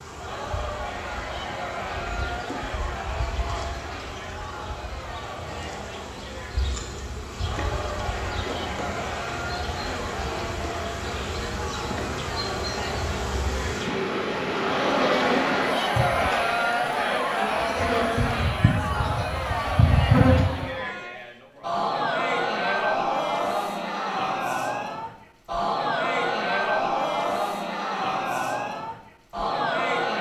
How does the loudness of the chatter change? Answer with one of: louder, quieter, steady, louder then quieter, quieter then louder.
louder.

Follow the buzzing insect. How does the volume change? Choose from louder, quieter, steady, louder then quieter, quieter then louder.
louder.